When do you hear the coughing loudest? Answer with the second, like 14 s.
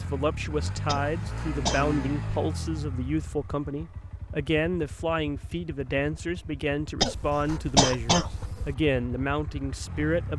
8 s.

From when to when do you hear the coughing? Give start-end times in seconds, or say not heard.
0.8-1.9, 7.0-8.8.